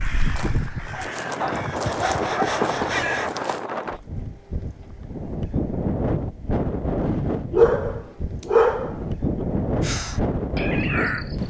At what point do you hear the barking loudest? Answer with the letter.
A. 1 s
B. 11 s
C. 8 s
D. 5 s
C.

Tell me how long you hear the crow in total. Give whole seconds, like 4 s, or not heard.
5 s.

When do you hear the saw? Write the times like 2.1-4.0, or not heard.
1.9-3.4.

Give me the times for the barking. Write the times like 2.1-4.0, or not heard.
0.4-2.9, 7.5-9.4.